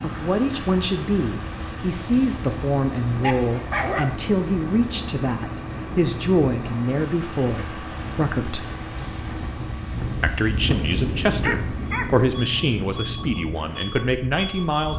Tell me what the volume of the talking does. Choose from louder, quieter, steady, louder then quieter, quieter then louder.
steady.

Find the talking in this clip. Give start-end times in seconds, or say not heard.
0.0-8.7, 10.2-14.9.